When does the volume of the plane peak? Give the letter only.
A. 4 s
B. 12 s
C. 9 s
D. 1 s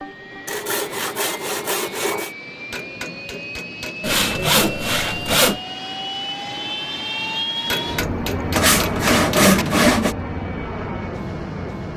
C.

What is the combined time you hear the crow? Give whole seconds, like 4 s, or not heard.
not heard.